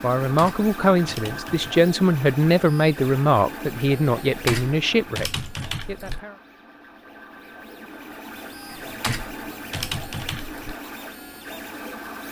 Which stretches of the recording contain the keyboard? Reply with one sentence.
You can hear the keyboard from 0.2 to 1.9 s, from 4.2 to 6.2 s and from 8.7 to 10.8 s.